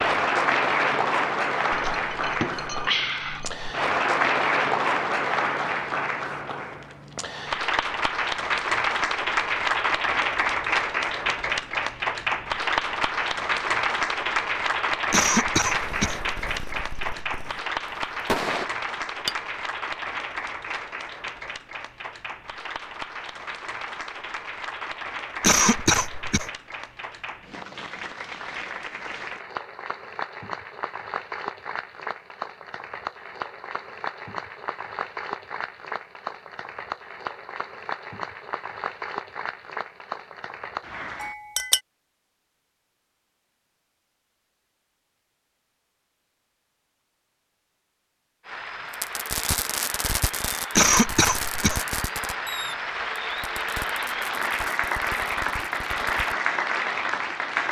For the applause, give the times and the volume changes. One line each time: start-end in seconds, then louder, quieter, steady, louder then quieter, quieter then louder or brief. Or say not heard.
0.0-41.4 quieter
48.5-57.6 louder.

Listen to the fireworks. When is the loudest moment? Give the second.
18 s.